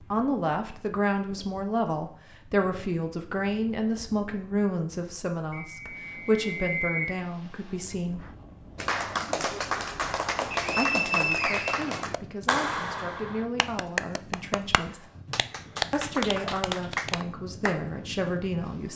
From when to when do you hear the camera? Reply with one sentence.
The camera can't be heard in this clip.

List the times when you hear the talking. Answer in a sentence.
The talking can be heard from 0.1 to 8.2 s, from 10.8 to 15.1 s and from 15.9 to 18.9 s.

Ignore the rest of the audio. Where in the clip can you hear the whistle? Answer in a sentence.
You can hear the whistle from 5.5 to 7.0 s and from 10.5 to 12.4 s.